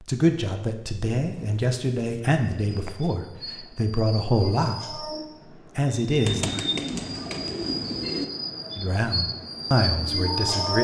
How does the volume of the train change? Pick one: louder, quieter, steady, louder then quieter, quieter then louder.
louder.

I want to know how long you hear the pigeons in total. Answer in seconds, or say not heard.
4 s.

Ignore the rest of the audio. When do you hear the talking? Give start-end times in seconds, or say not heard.
0.0-5.0, 5.8-6.5, 8.8-10.7.